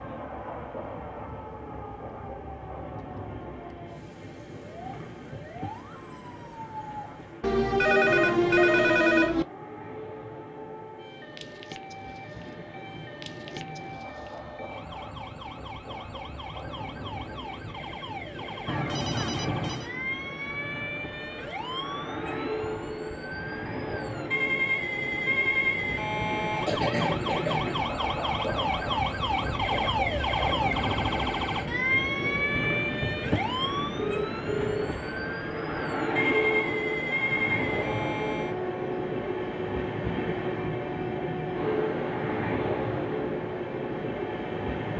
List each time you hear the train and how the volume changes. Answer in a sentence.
The train can be heard from 0.0 to 44.9 s, getting louder.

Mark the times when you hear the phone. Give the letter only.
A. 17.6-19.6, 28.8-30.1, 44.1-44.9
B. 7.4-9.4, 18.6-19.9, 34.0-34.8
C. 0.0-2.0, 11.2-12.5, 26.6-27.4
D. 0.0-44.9
B.